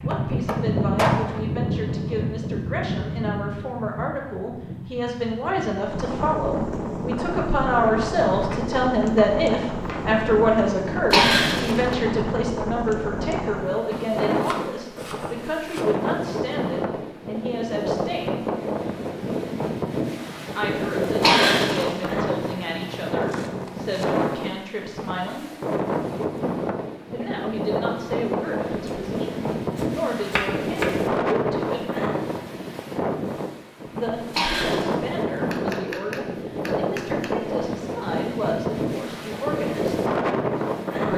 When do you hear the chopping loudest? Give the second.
1 s.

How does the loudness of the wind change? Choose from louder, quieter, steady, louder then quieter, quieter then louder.
steady.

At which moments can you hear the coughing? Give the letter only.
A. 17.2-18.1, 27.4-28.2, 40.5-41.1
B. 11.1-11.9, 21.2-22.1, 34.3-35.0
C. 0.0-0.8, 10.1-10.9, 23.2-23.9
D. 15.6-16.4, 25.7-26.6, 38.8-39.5
B.